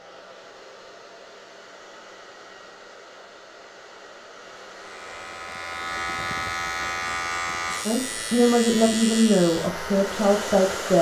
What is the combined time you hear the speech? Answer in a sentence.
The speech can be heard for 3 seconds in total.